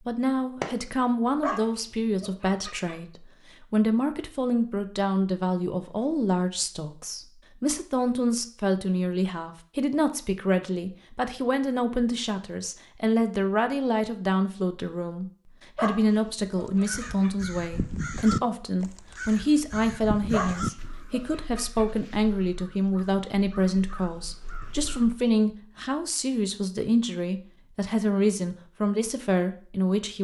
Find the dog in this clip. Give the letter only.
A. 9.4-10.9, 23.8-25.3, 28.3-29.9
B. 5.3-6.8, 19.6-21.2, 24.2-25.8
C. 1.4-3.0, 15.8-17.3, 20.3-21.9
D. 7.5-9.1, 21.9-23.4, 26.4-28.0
C.